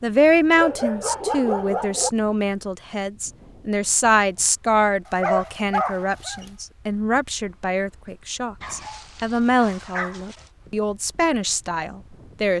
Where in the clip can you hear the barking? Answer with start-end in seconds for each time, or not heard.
0.6-2.1, 5.0-6.5, 8.6-10.4.